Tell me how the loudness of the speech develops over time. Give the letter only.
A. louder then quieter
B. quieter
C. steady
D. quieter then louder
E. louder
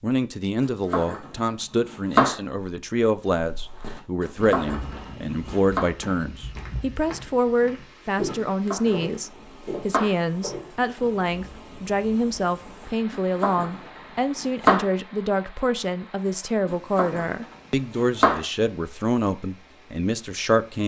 C.